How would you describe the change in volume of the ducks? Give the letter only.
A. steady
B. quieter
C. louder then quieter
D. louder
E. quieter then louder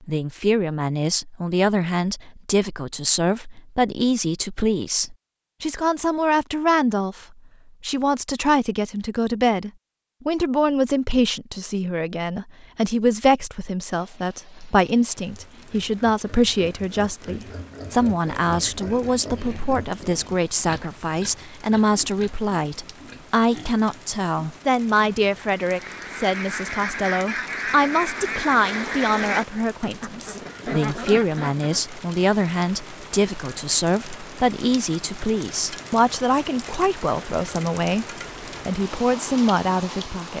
A.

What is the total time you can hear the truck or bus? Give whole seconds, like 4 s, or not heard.
not heard.